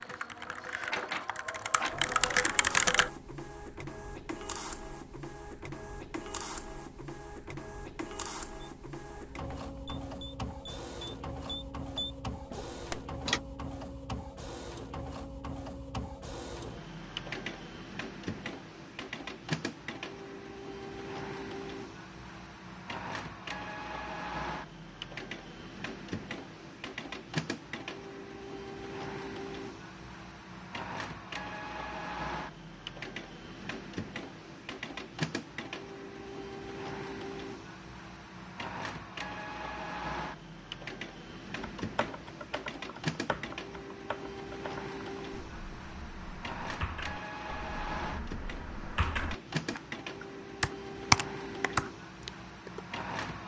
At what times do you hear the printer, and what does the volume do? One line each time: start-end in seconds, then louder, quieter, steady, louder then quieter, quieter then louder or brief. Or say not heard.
0.0-53.4 steady.